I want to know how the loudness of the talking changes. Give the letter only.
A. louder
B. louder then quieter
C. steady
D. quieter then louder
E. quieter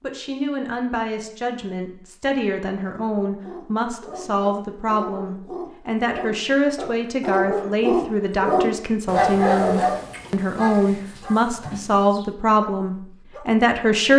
A.